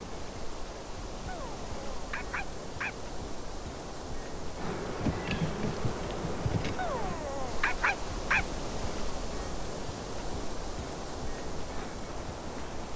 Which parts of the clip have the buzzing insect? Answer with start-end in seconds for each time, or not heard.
4.6-7.2.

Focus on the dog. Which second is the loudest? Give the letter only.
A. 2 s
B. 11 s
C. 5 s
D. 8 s
D.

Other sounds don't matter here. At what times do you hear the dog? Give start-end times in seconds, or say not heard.
1.2-3.0, 6.8-8.4.